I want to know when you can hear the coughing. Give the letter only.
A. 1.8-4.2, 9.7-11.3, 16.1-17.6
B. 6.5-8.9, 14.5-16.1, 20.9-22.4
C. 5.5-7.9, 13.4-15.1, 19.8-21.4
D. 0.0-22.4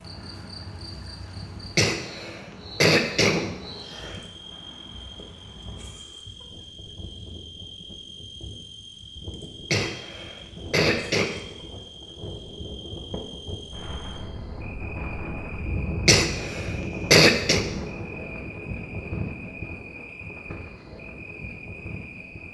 A.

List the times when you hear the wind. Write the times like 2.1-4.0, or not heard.
0.0-22.4.